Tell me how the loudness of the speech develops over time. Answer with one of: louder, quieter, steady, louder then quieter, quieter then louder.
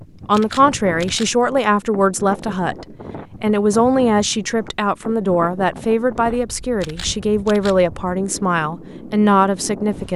steady.